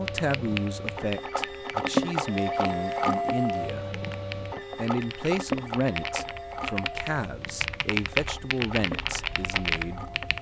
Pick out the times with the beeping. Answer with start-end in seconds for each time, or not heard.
not heard.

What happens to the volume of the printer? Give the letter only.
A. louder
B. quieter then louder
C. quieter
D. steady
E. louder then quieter
C.